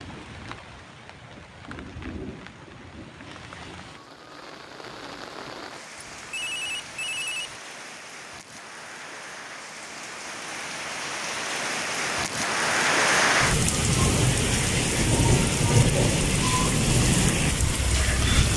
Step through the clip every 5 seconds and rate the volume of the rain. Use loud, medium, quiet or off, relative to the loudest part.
quiet, quiet, loud, loud.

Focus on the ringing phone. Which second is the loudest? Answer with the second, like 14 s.
7 s.